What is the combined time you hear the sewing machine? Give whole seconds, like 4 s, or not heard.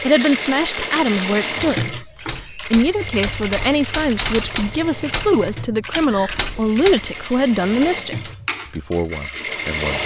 10 s.